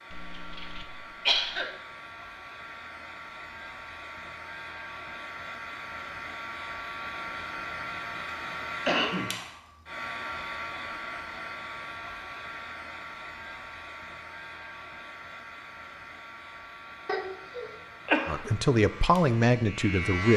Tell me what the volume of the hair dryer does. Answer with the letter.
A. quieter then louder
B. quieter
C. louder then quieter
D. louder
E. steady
C.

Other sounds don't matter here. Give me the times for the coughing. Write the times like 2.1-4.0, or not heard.
0.1-1.7, 8.8-9.3, 17.1-18.5.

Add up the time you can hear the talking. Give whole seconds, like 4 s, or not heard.
2 s.